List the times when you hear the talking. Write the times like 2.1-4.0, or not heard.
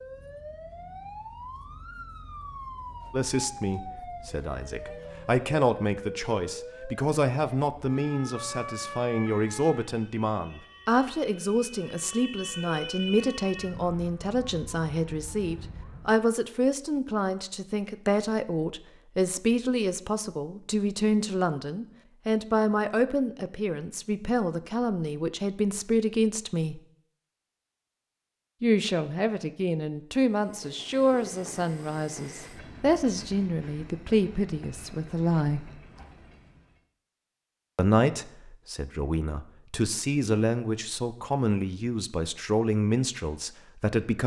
3.1-26.8, 28.6-35.7, 37.8-44.2.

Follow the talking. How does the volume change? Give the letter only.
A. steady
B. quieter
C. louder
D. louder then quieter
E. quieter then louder
A.